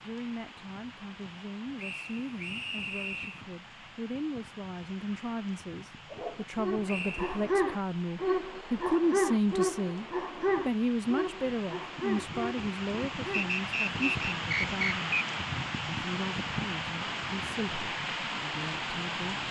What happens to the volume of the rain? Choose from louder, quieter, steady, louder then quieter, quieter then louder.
louder.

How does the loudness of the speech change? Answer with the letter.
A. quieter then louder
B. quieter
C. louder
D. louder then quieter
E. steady
D.